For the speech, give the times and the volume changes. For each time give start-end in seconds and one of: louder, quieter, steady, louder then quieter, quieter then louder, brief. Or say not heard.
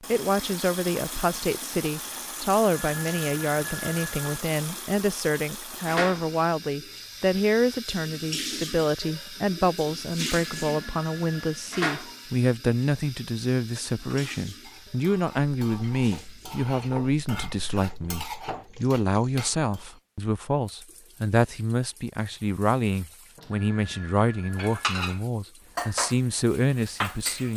0.1-27.5 steady.